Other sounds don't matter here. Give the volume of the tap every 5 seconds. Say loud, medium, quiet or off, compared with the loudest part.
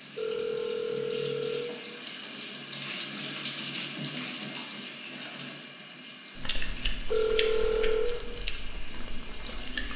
loud, medium.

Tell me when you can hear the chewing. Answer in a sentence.
You can hear the chewing from 6.3 to 9.9 s.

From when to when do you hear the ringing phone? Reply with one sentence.
You can hear the ringing phone from 0.1 to 1.7 s and from 7.1 to 8.1 s.